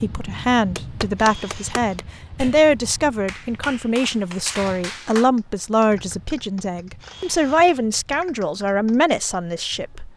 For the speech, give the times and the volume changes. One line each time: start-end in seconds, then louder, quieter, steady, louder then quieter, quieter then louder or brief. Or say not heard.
0.0-10.1 steady.